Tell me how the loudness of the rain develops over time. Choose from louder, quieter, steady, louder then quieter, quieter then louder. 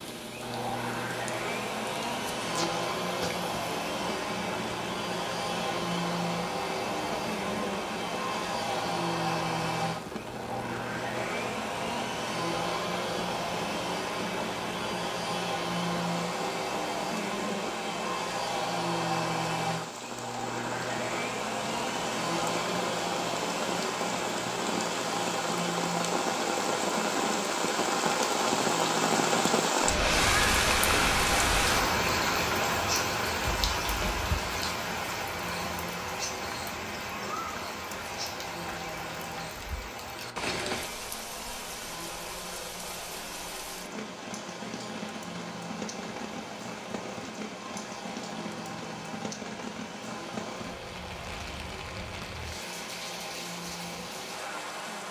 louder then quieter.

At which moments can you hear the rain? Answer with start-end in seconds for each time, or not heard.
0.0-55.0.